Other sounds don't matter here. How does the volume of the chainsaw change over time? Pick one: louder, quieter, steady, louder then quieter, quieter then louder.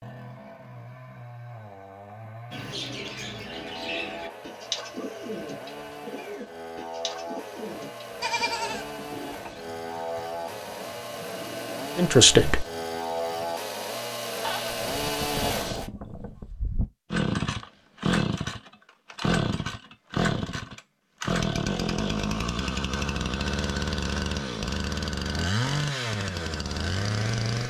louder.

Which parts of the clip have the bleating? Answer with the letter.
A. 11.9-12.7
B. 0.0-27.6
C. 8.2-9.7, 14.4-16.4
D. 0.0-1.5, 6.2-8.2
C.